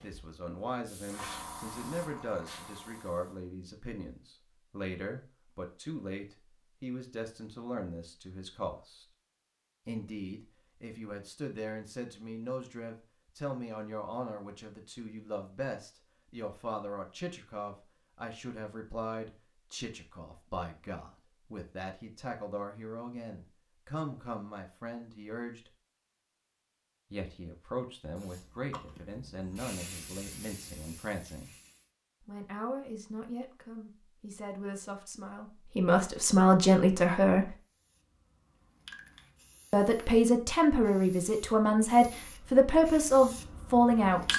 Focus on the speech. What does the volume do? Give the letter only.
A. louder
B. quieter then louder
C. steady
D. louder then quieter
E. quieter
A.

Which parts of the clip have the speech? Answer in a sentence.
The speech can be heard from 0.0 to 9.1 s, from 9.8 to 25.7 s, from 27.1 to 31.5 s, from 32.2 to 37.5 s and from 39.7 to 44.3 s.